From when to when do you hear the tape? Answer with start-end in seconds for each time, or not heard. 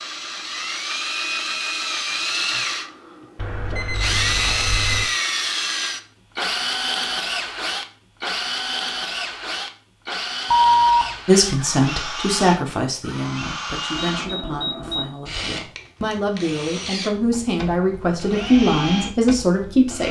not heard.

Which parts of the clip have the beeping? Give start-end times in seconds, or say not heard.
3.4-5.0, 10.5-11.1, 13.9-15.1.